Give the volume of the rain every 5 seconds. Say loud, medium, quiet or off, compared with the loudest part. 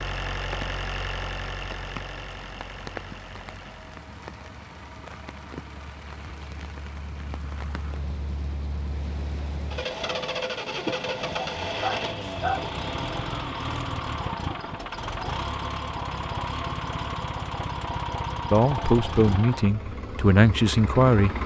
loud, loud, loud, off, off.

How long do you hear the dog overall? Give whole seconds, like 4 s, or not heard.
2 s.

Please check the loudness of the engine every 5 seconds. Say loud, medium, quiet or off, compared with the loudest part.
medium, medium, loud, loud, loud.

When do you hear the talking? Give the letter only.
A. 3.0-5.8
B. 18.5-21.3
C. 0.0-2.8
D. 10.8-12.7
B.